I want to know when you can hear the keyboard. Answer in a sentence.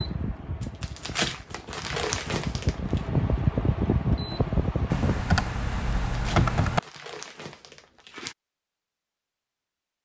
The keyboard can be heard from 4.9 to 6.8 s.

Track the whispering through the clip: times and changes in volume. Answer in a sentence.
You can't hear the whispering here.